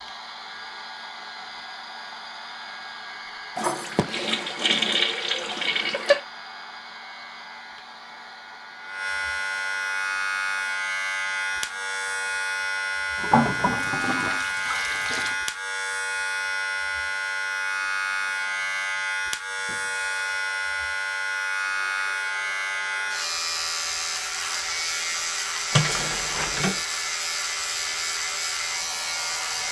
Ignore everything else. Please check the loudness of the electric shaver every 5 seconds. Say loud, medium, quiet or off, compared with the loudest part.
quiet, medium, loud, loud, loud, loud.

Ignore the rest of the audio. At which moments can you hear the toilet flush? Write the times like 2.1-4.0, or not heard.
3.5-6.2, 13.2-15.3, 25.7-26.8.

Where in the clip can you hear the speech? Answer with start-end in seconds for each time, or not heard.
not heard.